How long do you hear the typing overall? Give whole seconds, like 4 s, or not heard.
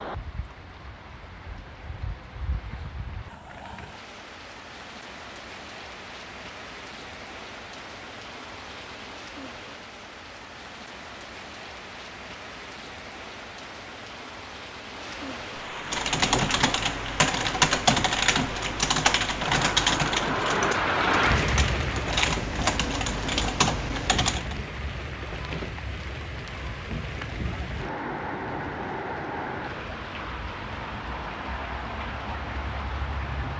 9 s.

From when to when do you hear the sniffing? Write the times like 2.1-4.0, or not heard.
not heard.